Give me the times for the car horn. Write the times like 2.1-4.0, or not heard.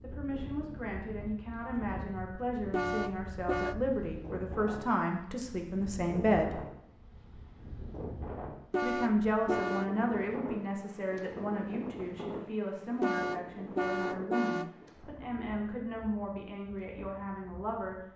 2.7-3.8, 8.7-9.9, 13.0-14.8.